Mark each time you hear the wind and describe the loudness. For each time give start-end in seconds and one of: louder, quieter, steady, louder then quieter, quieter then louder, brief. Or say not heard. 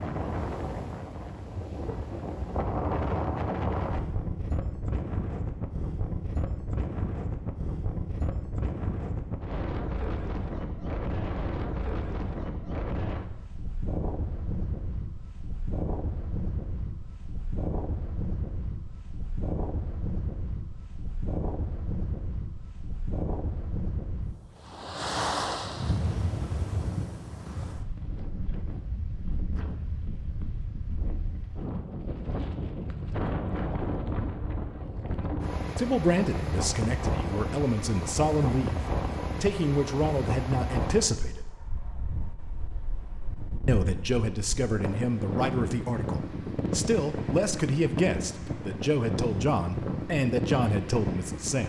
0.0-51.6 steady.